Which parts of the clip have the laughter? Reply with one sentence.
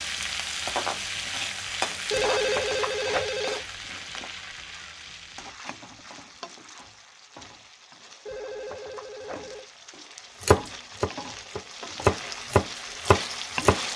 The laughter can't be heard in this clip.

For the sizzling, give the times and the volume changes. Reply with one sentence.
You can hear the sizzling from 0.0 to 13.9 s, getting quieter then louder.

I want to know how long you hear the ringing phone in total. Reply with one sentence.
You can hear the ringing phone for 3 seconds altogether.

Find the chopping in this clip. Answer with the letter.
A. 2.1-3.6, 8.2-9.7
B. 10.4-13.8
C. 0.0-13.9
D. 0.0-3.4
B.